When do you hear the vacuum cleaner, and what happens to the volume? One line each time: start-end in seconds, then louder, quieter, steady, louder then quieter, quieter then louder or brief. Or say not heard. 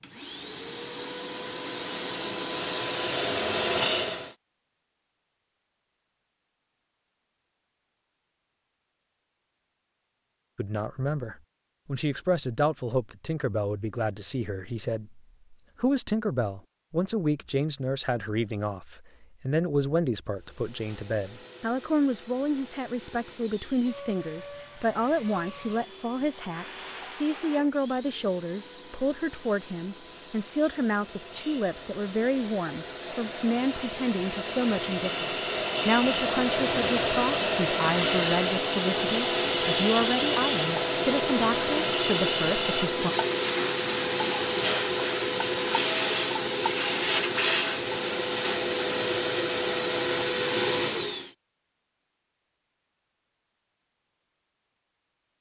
0.0-4.3 louder
20.4-51.3 louder.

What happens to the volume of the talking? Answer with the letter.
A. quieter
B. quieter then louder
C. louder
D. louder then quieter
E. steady
E.